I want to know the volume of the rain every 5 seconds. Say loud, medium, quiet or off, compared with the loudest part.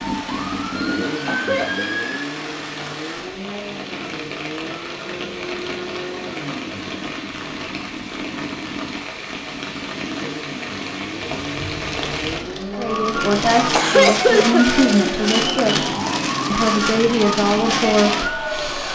medium, medium, loud, loud.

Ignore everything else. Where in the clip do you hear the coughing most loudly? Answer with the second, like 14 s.
14 s.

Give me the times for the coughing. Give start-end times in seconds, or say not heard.
1.1-1.9, 13.6-14.8.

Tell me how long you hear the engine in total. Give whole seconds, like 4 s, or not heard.
19 s.